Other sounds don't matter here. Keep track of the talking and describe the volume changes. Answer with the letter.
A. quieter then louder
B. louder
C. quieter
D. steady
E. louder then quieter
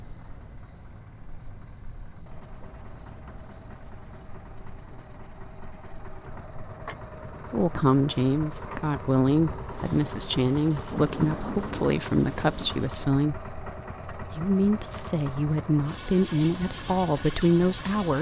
D.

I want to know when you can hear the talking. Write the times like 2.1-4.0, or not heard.
7.5-13.5, 14.3-18.1.